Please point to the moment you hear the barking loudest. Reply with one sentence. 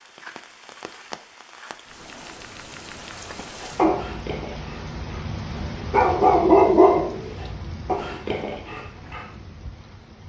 The loudest moment of the barking is at 7 seconds.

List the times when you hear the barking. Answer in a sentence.
You can hear the barking from 3.8 to 4.8 s and from 5.5 to 8.8 s.